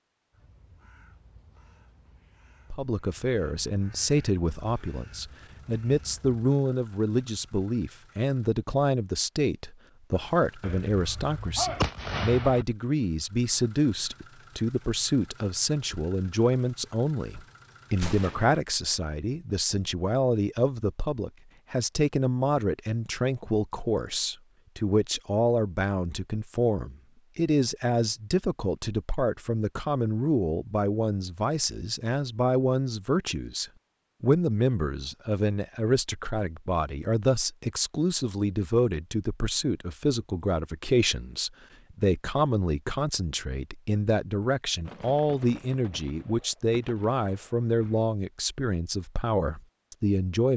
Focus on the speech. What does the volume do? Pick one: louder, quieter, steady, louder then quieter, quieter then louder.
steady.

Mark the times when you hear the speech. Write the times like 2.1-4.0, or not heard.
2.7-50.5.